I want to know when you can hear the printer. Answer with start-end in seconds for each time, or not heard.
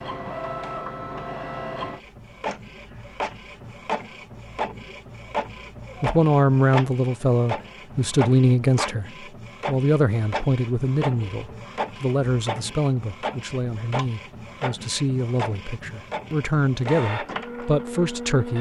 0.0-18.5.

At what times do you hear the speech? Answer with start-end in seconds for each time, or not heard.
6.0-18.5.